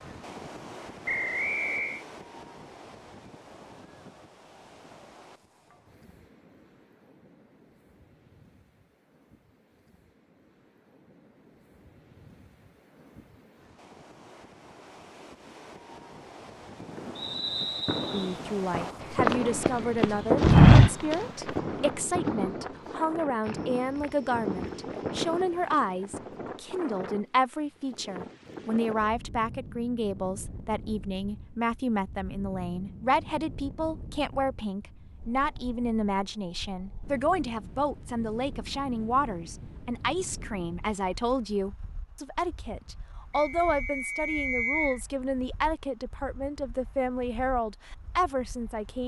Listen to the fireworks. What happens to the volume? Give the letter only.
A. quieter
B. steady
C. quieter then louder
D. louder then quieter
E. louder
D.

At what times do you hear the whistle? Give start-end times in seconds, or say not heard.
1.1-2.0, 17.1-18.4, 43.3-45.0.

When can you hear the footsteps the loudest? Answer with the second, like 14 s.
21 s.